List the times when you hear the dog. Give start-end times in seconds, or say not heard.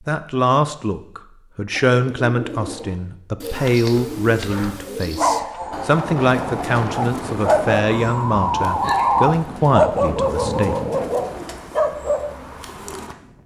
3.5-12.3.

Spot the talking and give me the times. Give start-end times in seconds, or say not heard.
0.1-10.8.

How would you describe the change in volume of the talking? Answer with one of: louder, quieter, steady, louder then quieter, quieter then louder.
steady.